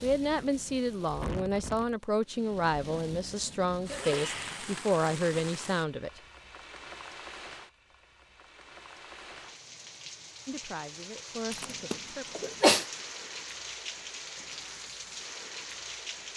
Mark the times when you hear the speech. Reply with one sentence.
You can hear the speech from 0.0 to 6.2 s and from 10.4 to 12.4 s.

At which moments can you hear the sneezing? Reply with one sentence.
The sneezing can be heard from 3.9 to 4.8 s and from 11.5 to 12.8 s.